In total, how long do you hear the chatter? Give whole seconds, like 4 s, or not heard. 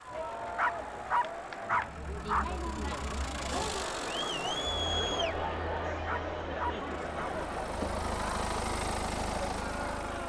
10 s.